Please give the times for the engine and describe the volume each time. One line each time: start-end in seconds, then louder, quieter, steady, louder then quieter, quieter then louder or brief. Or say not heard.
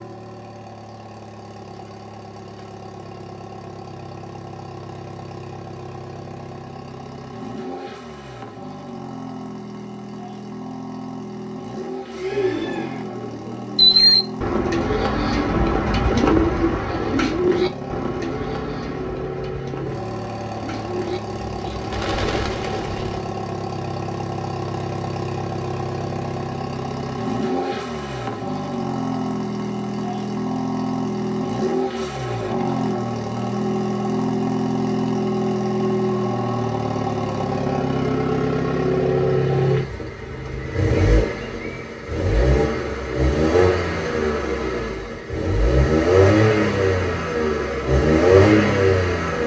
0.0-49.4 louder.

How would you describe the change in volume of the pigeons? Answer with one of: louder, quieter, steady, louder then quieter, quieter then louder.
quieter then louder.